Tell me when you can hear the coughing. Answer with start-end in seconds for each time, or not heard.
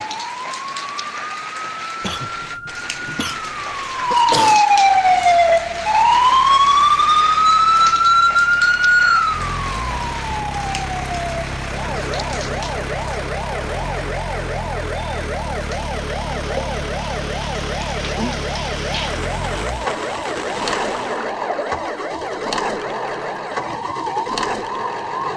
2.0-4.6.